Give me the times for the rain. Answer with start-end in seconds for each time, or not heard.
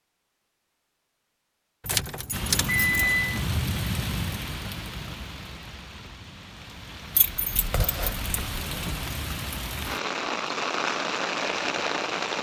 2.3-12.3.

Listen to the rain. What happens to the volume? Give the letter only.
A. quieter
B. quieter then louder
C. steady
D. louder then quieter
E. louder
B.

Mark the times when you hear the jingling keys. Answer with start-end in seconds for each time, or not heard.
1.9-3.4, 7.2-9.1.